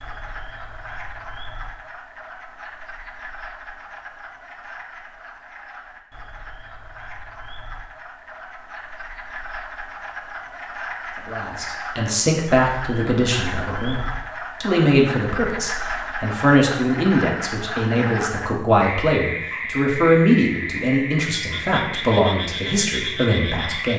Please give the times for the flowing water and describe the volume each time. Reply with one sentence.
You can't hear the flowing water here.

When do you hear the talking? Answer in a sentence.
You can hear the talking from 11.2 to 23.9 s.